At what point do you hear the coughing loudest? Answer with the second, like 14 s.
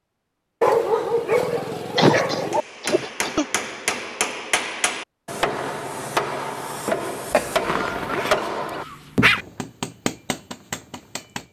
2 s.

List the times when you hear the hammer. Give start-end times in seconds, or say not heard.
2.5-11.4.